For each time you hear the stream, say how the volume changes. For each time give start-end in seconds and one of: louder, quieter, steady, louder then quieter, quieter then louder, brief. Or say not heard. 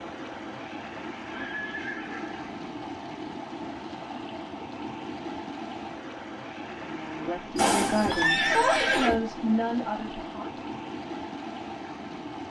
0.0-12.4 steady.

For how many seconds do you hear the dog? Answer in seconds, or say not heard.
not heard.